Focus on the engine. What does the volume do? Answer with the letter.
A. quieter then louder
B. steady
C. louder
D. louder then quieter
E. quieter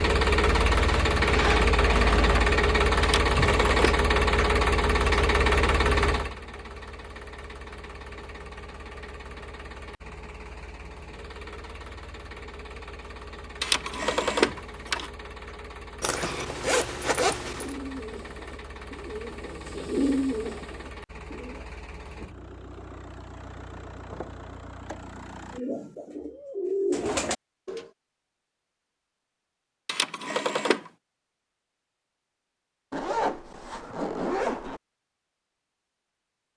E.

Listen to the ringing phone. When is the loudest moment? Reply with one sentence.
The loudest moment of the ringing phone is at 14 seconds.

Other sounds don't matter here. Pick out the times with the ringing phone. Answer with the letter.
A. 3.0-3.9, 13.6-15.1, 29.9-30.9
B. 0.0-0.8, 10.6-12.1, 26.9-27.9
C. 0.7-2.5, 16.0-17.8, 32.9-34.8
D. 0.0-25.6
A.